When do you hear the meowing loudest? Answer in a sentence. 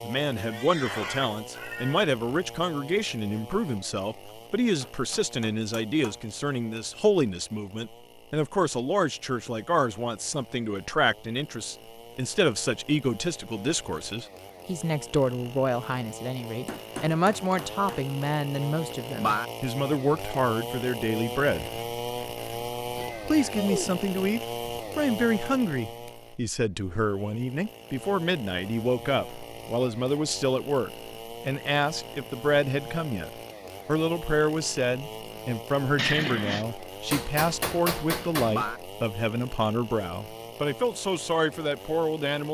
The loudest moment of the meowing is at 36 seconds.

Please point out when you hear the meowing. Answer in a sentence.
You can hear the meowing from 0.4 to 2.0 s, from 23.0 to 23.9 s and from 36.0 to 36.6 s.